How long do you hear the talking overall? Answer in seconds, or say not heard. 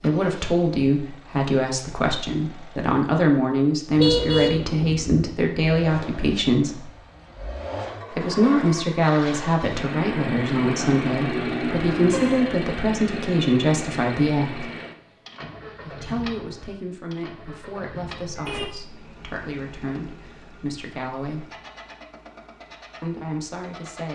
20 s.